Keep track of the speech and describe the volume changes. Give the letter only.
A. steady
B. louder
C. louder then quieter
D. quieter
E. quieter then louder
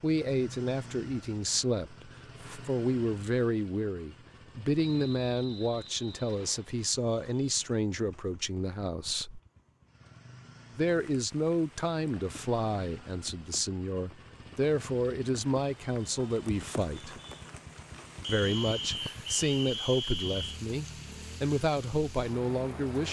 A.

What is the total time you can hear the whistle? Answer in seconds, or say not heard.
4 s.